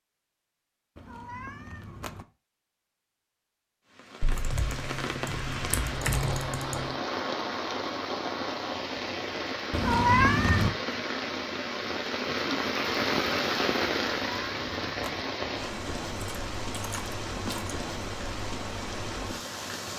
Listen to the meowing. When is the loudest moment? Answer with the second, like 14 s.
10 s.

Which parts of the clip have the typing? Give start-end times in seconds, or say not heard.
4.2-7.0, 16.2-17.8.